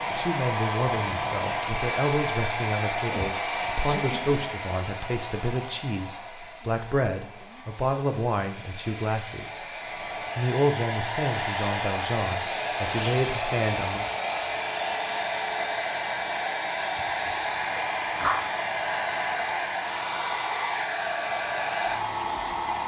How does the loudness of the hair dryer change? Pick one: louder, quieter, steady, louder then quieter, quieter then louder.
quieter then louder.